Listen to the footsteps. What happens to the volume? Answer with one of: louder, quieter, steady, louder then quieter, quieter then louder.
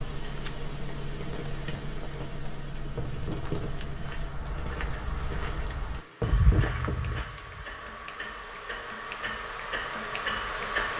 louder then quieter.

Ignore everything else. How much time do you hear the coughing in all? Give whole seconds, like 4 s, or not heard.
2 s.